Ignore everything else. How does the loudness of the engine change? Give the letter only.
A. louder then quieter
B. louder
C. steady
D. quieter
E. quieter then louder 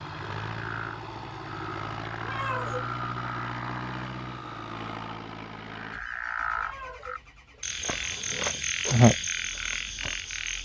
D.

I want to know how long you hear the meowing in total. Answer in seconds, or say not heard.
3 s.